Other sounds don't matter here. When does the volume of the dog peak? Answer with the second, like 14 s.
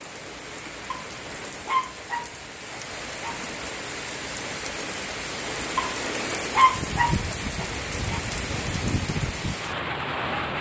7 s.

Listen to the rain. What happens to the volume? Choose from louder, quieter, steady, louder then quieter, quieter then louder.
louder.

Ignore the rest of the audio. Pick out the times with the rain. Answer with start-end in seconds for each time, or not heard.
0.0-10.5.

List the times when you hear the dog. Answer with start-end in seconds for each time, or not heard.
0.9-3.4, 5.8-8.2.